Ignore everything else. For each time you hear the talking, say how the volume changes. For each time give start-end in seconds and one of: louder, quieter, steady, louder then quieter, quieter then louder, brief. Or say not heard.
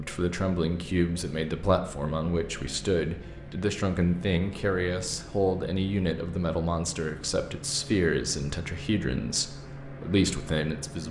0.0-11.0 steady.